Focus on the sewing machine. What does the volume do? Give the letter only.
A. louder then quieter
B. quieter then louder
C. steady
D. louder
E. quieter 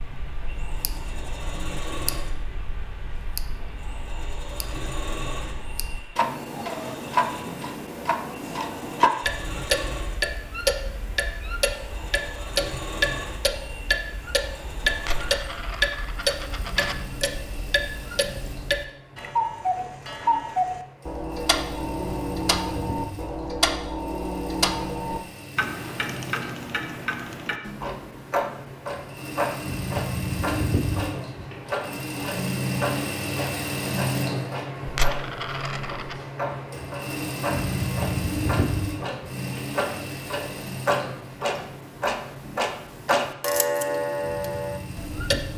D.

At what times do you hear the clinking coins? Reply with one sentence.
You can hear the clinking coins from 14.9 to 16.9 s and from 34.9 to 36.1 s.